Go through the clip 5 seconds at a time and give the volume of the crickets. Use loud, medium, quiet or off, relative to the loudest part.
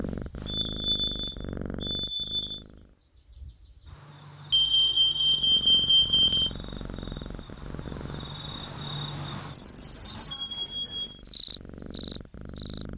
quiet, medium, loud.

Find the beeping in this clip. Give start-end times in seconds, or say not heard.
0.5-2.6, 4.5-6.5, 10.3-11.2.